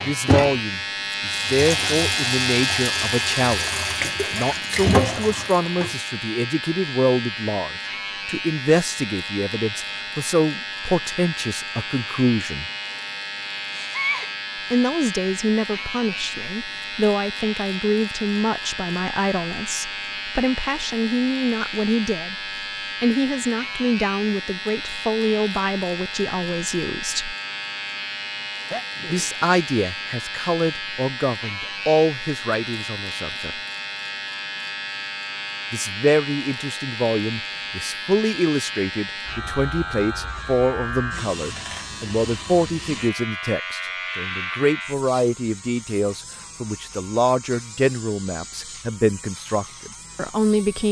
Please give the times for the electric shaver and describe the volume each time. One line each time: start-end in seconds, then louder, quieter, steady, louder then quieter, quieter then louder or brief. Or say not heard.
0.0-50.8 quieter.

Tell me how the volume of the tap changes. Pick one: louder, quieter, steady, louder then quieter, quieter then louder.
louder.